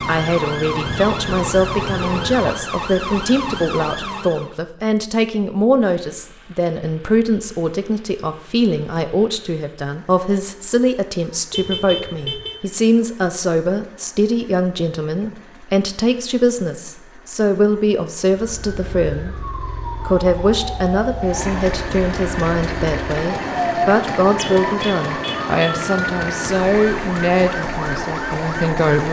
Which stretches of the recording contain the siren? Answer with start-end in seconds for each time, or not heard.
0.0-4.5, 18.3-29.0.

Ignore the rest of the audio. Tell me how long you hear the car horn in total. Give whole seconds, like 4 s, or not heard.
4 s.